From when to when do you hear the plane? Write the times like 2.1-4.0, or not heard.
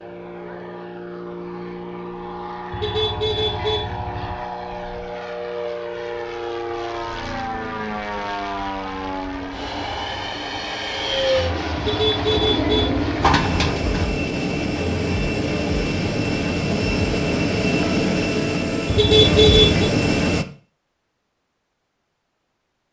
0.0-20.4.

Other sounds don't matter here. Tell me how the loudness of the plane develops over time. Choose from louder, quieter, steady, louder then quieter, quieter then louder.
louder.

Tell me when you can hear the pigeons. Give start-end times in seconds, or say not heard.
12.2-14.1.